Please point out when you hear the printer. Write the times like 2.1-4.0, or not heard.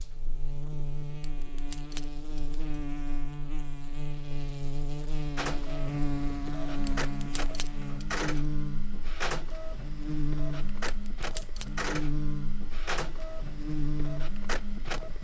5.3-15.1.